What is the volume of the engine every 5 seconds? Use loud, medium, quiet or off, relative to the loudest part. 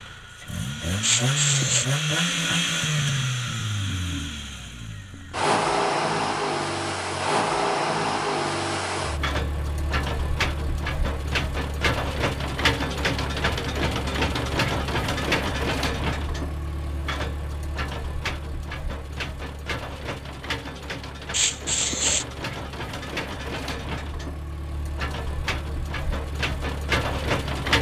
loud, loud, loud, medium, medium, loud.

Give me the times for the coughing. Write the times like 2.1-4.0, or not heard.
1.0-1.9, 21.3-22.2.